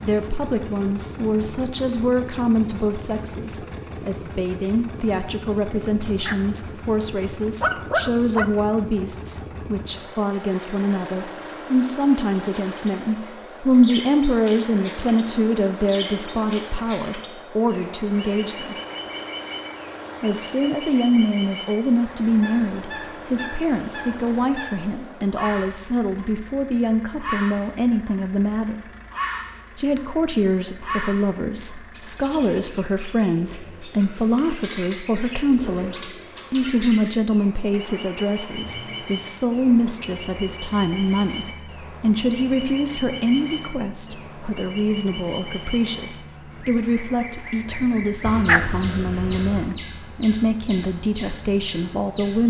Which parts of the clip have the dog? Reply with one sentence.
You can hear the dog from 6.0 to 8.5 s and from 48.2 to 49.7 s.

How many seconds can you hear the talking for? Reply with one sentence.
The talking can be heard for 50 seconds in total.